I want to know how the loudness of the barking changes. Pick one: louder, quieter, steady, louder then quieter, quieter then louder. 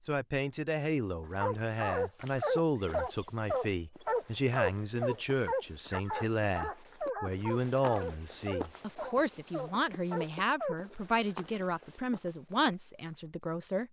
quieter.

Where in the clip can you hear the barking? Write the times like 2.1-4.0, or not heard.
1.4-10.8.